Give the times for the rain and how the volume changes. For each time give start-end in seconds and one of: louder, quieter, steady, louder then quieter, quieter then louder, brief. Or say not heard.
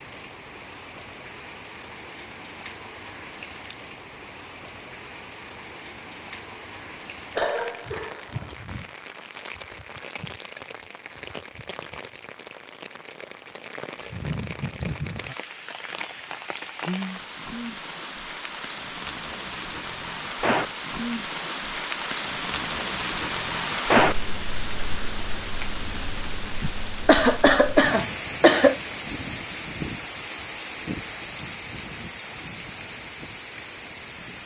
0.0-34.4 louder then quieter.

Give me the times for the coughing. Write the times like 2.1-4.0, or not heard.
7.3-8.6, 26.6-28.8.